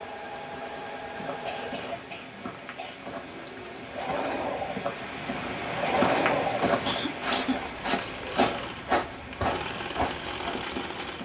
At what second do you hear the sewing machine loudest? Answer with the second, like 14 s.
6 s.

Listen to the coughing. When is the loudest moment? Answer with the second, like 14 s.
7 s.